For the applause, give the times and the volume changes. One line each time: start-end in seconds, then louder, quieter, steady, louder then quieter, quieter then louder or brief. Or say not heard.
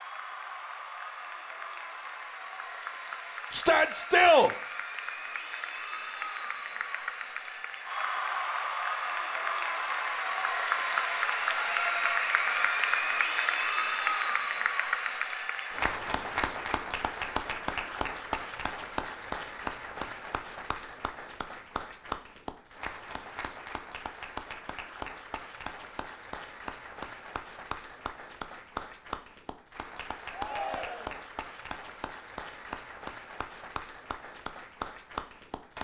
0.0-35.7 louder then quieter.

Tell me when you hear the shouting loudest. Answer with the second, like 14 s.
4 s.